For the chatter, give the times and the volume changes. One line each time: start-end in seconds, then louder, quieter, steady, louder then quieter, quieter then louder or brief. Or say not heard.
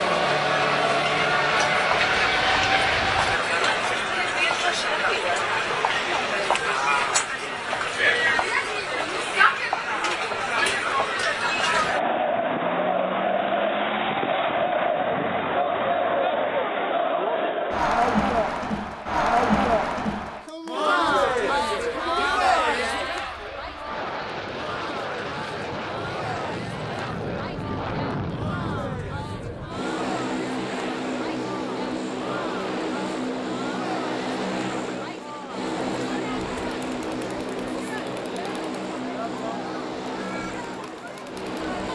0.0-41.9 quieter.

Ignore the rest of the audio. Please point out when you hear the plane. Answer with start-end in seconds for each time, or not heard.
0.0-3.4, 21.0-41.9.